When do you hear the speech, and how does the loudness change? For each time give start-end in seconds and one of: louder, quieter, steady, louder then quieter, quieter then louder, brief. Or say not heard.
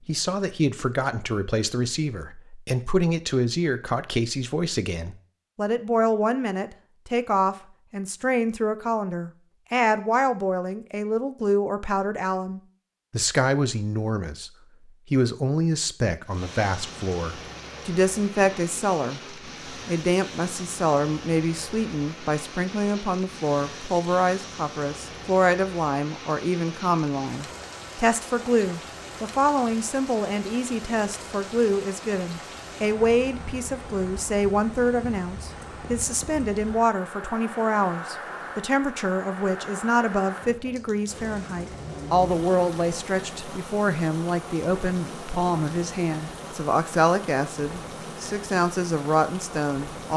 0.1-50.1 steady.